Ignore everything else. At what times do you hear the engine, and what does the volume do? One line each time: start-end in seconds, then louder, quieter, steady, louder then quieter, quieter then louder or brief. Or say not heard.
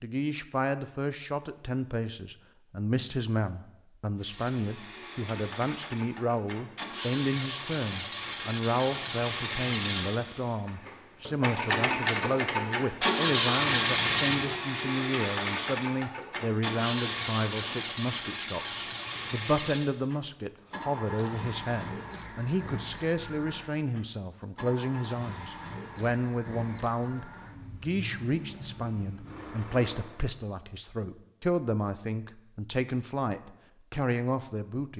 4.2-30.4 louder then quieter.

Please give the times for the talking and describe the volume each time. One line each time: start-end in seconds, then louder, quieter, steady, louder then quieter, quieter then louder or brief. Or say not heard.
0.0-34.9 steady.